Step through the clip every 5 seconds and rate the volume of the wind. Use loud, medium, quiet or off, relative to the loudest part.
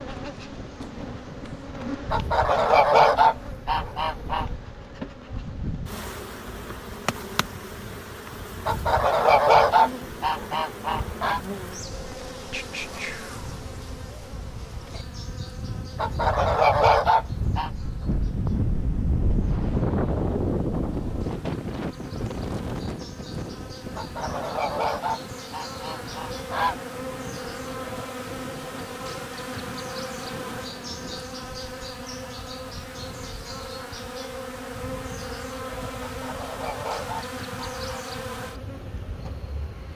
quiet, quiet, quiet, loud, loud, quiet, quiet, quiet.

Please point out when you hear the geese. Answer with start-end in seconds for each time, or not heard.
2.1-4.5, 8.7-11.4, 15.9-17.7, 23.9-26.8, 36.0-38.0.